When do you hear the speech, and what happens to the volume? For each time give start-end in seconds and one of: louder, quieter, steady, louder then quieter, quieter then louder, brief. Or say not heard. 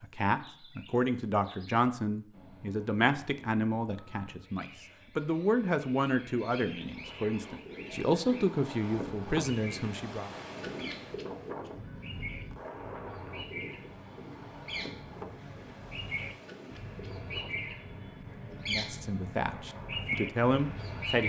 0.0-10.3 steady
18.5-21.2 brief.